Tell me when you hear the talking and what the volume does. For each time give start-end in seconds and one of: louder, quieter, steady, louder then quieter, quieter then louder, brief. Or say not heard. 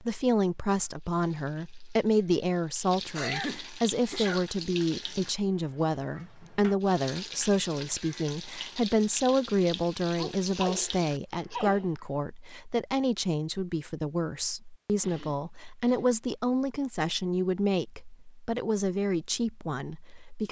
0.0-20.4 steady.